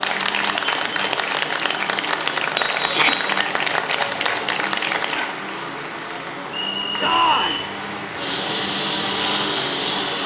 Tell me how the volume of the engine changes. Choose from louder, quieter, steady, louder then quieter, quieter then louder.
louder.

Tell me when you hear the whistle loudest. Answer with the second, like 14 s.
3 s.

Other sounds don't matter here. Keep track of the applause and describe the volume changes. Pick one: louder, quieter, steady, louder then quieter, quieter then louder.
quieter.